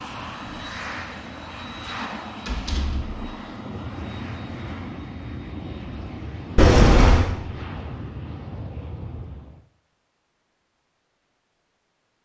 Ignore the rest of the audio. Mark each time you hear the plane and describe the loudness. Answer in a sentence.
The plane can be heard from 0.0 to 9.7 s, at a steady volume.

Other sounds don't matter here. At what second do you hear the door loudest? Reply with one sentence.
The volume of the door peaks at 7 seconds.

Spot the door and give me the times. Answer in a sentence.
You can hear the door from 2.5 to 3.2 s and from 6.5 to 7.3 s.